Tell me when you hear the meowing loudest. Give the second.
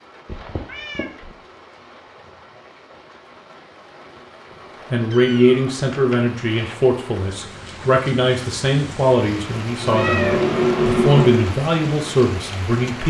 11 s.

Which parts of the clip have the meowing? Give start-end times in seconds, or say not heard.
0.2-1.4, 5.1-6.9, 9.8-11.5.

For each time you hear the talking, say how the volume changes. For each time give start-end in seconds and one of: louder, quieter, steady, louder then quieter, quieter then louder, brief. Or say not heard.
4.9-13.0 steady.